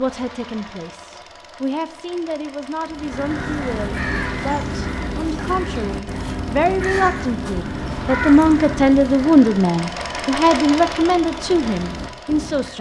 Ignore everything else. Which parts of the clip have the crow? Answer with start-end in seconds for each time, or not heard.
2.9-12.7.